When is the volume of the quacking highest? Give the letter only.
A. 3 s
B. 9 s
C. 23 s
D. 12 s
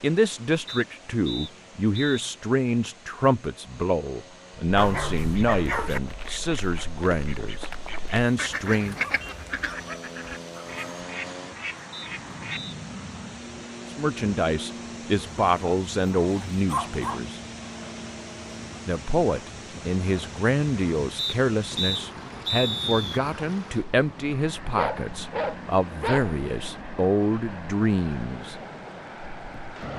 B.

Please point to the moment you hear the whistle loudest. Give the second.
23 s.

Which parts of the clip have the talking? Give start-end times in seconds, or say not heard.
0.0-8.9, 13.9-17.4, 18.9-28.6.